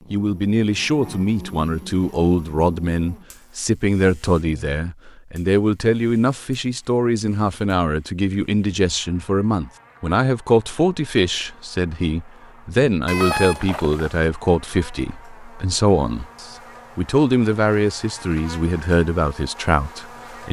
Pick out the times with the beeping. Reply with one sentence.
You can hear the beeping from 13.1 to 14.2 s.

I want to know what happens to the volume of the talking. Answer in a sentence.
The volume of the talking stays about the same.